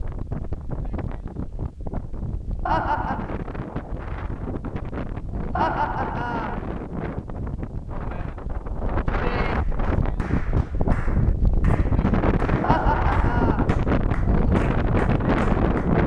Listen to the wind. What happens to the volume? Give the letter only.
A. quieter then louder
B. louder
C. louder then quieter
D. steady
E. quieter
B.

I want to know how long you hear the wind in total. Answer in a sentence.
You can hear the wind for 16 seconds altogether.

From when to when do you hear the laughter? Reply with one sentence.
The laughter can be heard from 2.6 to 3.3 s, from 5.5 to 6.6 s and from 12.6 to 13.7 s.